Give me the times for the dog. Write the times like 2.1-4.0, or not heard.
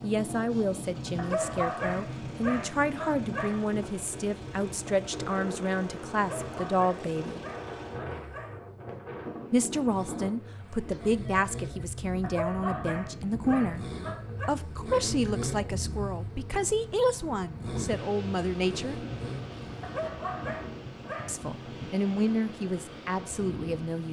1.1-3.6, 6.2-8.7, 12.2-14.5, 19.8-21.4.